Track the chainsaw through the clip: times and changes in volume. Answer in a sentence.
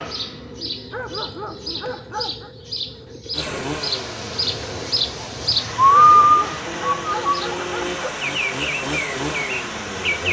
You can hear the chainsaw from 3.3 to 10.2 s, getting quieter then louder.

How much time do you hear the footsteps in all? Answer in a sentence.
The footsteps can't be heard in this clip.